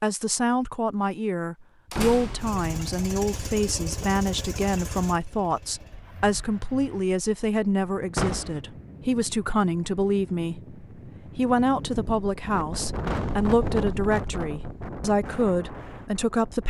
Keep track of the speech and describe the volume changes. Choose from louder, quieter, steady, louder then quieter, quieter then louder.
steady.